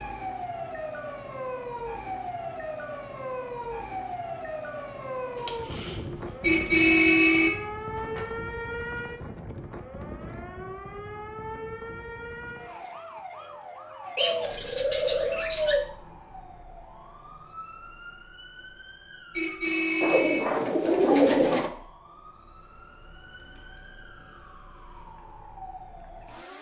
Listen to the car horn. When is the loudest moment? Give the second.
7 s.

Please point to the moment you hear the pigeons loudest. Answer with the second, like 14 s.
21 s.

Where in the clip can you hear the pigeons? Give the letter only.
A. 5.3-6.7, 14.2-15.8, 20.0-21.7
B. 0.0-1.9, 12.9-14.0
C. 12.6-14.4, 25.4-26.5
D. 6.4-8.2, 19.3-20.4
A.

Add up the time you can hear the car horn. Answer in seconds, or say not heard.
3 s.